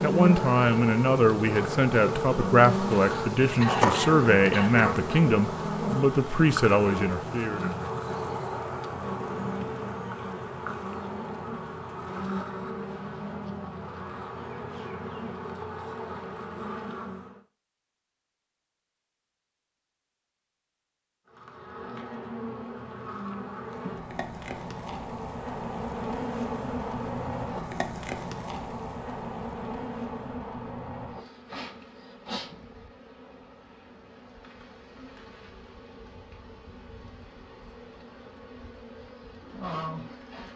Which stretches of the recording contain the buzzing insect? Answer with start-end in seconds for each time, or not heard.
0.0-17.4, 21.2-40.5.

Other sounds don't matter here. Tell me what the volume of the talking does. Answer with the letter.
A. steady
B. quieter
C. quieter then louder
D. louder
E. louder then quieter
A.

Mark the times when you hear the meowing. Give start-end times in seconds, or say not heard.
not heard.